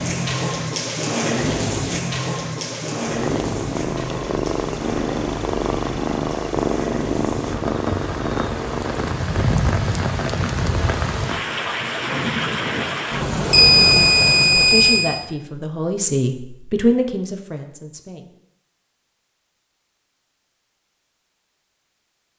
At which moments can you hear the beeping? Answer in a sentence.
You can hear the beeping from 13.5 to 15.1 s.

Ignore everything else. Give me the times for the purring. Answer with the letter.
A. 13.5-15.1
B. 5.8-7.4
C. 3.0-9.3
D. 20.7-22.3
C.